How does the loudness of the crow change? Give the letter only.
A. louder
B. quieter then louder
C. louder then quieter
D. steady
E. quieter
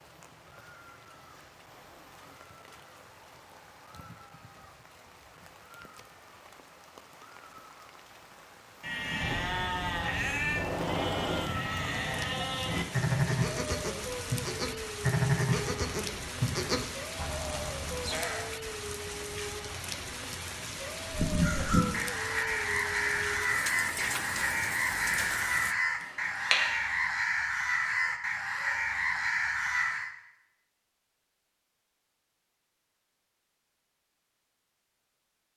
D.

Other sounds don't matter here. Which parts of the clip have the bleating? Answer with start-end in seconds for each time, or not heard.
8.8-18.5.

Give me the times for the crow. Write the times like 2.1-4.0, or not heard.
21.1-30.1.